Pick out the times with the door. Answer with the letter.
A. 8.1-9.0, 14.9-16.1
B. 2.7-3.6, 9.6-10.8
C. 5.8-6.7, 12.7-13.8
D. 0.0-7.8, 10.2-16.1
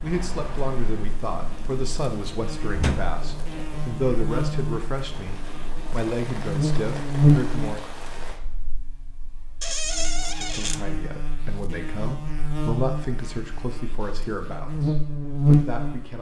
B.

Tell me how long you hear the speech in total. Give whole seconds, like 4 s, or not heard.
14 s.